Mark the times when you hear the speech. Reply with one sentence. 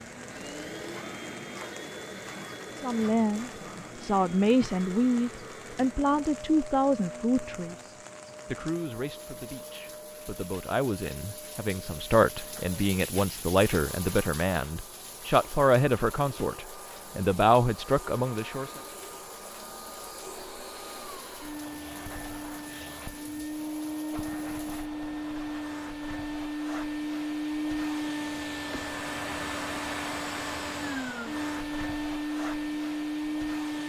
The speech can be heard from 2.8 to 18.8 s.